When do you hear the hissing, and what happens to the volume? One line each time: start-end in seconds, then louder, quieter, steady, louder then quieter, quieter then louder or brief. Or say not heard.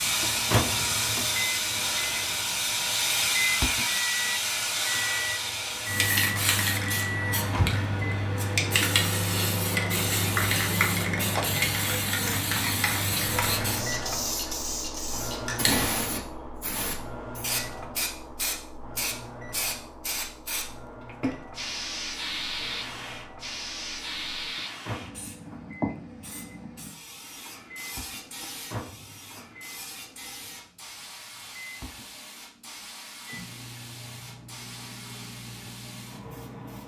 0.0-36.8 quieter.